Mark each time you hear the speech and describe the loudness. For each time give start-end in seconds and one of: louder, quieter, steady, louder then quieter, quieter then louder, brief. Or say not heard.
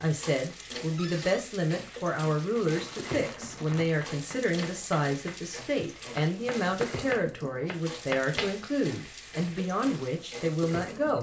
0.0-11.1 steady.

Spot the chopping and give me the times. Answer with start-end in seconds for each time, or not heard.
3.4-8.6.